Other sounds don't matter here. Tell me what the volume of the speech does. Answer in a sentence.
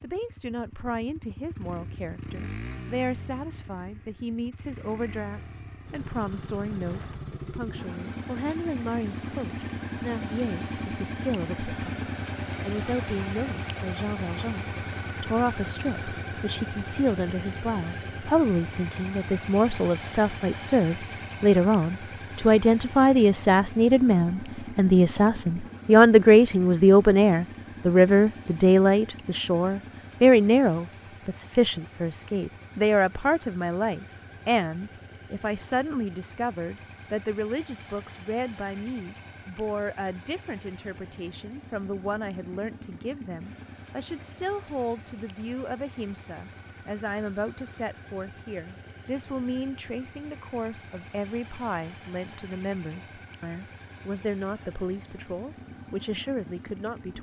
The loudness of the speech goes up, then down.